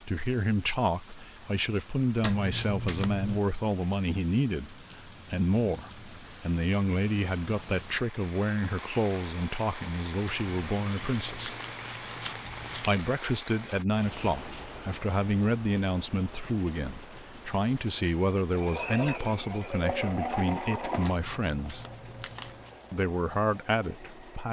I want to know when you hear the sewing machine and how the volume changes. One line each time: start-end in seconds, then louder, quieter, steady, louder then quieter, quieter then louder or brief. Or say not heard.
18.5-24.4 quieter.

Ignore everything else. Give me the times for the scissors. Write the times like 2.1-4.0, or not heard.
2.2-3.4, 10.2-12.9, 21.0-22.8.